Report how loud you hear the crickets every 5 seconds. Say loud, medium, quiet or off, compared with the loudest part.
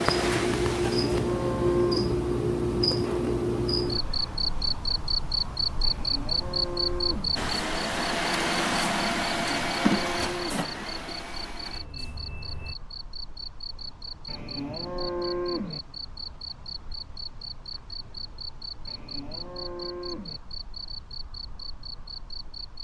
loud, loud, quiet, quiet, quiet.